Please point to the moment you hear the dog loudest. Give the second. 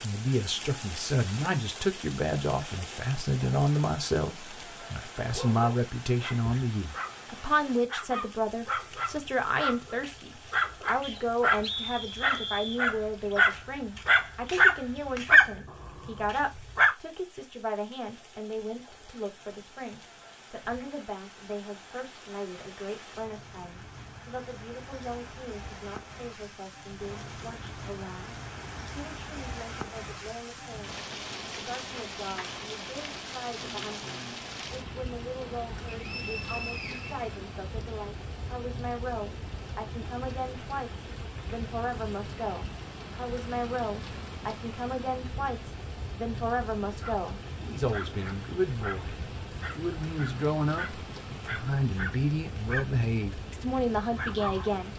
15 s.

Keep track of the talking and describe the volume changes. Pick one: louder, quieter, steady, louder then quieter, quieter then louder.
quieter then louder.